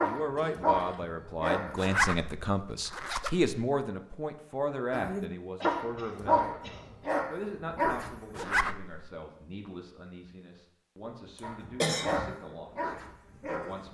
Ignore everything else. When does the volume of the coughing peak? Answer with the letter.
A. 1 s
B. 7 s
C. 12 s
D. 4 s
C.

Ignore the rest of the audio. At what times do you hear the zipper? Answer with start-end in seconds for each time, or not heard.
1.8-3.5, 8.3-9.1.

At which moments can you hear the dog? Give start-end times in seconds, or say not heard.
0.0-1.9, 4.9-8.4, 11.4-13.9.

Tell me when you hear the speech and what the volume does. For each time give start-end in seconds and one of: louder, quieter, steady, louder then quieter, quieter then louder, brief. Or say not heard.
0.0-13.9 quieter.